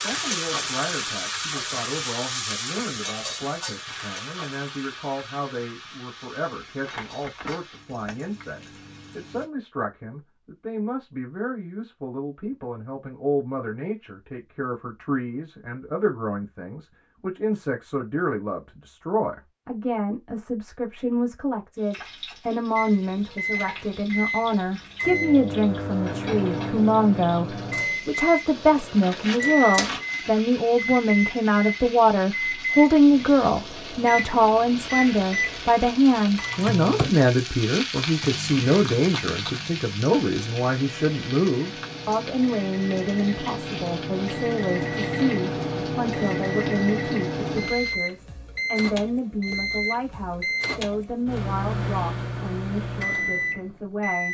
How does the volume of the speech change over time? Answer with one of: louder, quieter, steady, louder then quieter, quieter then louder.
louder then quieter.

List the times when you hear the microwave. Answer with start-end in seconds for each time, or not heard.
22.8-54.2.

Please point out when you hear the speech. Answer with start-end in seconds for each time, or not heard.
0.0-54.2.